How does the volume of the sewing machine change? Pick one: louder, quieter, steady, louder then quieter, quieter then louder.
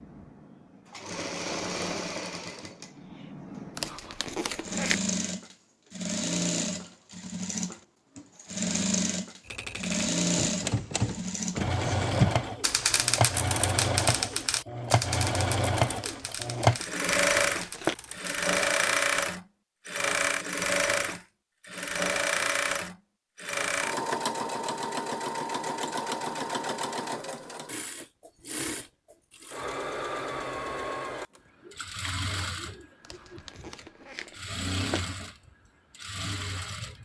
louder then quieter.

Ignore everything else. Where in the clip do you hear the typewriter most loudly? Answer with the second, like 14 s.
12 s.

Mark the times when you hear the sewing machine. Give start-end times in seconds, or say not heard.
0.0-36.9.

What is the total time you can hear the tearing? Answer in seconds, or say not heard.
5 s.